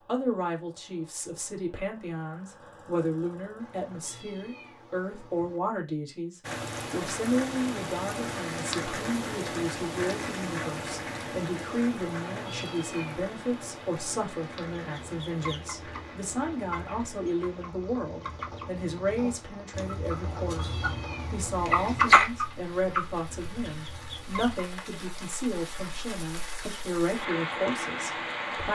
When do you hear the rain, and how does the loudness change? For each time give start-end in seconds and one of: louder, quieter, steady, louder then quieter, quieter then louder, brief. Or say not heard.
6.4-28.7 quieter then louder.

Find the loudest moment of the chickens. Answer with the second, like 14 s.
22 s.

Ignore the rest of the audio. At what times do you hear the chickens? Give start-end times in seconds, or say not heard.
14.8-24.7.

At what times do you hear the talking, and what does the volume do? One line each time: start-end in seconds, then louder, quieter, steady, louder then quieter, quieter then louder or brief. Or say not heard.
0.1-28.7 steady.